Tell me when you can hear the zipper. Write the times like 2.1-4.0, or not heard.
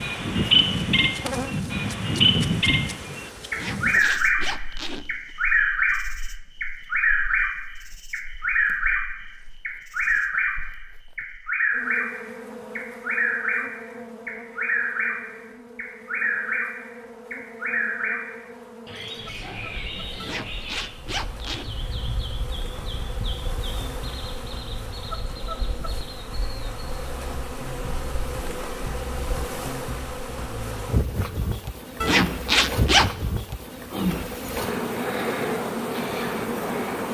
3.5-5.1, 20.2-21.7, 32.0-33.1.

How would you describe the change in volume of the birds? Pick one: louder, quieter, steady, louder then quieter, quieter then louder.
quieter.